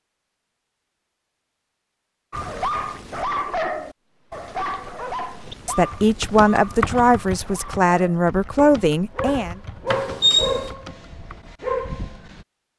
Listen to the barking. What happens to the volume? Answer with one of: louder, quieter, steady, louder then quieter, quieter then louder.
quieter then louder.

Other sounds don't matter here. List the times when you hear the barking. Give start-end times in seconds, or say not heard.
2.3-12.4.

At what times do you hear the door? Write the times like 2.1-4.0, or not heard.
9.8-10.7.